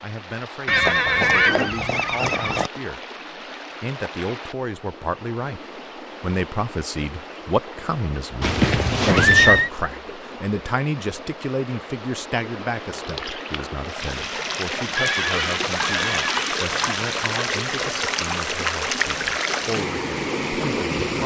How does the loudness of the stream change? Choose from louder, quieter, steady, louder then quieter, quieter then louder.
louder.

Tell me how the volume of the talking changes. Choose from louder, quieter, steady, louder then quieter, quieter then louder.
louder then quieter.